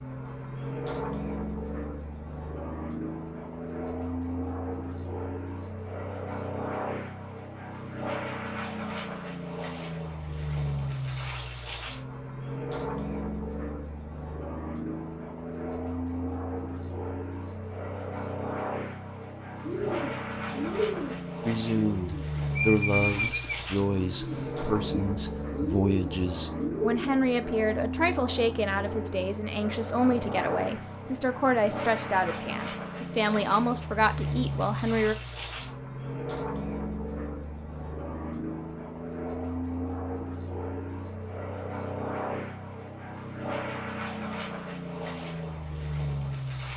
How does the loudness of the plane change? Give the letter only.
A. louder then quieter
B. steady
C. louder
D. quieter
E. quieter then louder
B.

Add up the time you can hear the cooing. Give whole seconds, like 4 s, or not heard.
8 s.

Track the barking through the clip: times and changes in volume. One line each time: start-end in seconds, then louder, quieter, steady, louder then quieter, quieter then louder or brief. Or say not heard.
not heard.